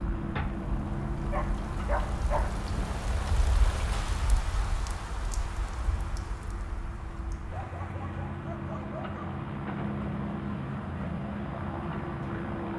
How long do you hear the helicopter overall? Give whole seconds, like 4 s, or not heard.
13 s.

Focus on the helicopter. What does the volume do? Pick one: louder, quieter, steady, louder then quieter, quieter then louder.
quieter then louder.